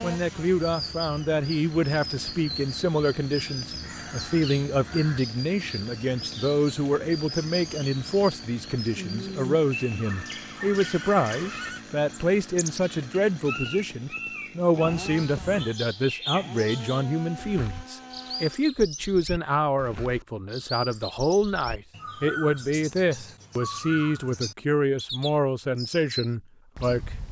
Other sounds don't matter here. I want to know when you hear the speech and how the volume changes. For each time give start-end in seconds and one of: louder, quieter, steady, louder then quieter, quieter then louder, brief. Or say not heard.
0.0-27.1 steady.